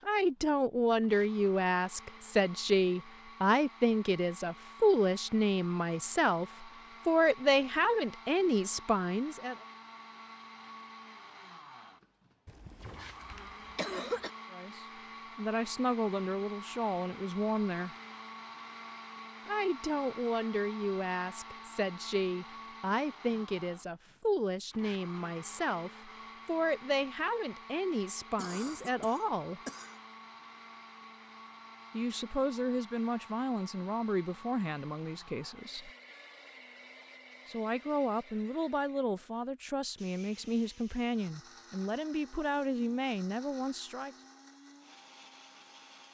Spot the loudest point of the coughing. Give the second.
14 s.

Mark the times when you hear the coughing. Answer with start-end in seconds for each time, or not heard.
12.4-14.3, 28.4-29.9.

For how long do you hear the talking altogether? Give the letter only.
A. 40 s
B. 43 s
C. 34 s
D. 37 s
C.